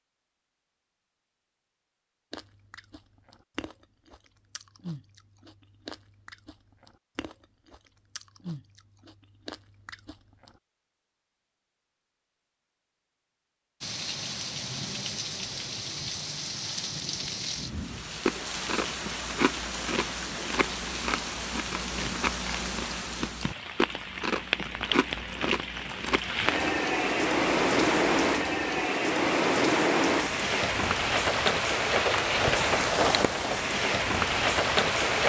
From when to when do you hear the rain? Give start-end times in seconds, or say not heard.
13.8-35.2.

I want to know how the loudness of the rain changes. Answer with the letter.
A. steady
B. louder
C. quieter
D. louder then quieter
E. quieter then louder
B.